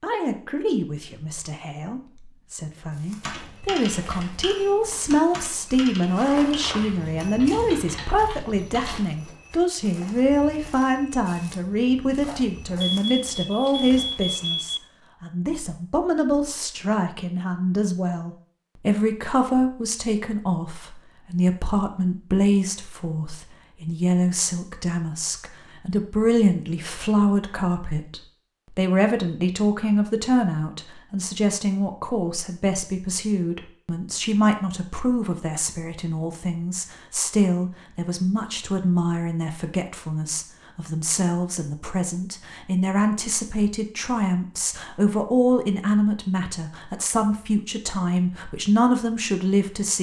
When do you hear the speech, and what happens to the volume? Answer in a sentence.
You can hear the speech from 0.0 to 49.9 s, at a steady volume.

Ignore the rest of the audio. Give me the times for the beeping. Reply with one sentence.
You can hear the beeping from 12.8 to 14.8 s.